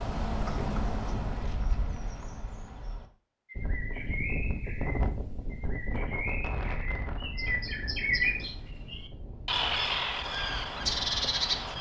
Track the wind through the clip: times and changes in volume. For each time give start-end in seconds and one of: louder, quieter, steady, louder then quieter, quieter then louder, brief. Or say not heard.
3.5-11.7 quieter.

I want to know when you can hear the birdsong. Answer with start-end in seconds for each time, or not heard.
0.0-11.7.